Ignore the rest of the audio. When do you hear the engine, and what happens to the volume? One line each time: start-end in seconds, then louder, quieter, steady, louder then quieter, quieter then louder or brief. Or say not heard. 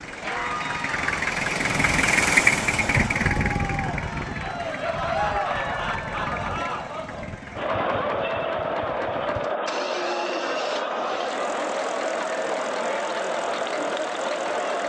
0.0-14.8 quieter.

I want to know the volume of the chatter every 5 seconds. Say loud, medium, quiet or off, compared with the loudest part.
medium, loud, loud.